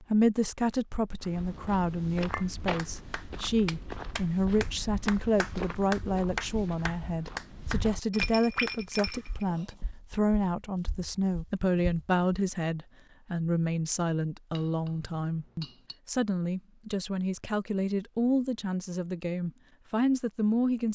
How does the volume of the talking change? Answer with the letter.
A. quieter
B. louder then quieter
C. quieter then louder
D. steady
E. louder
D.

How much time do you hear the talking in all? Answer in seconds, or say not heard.
21 s.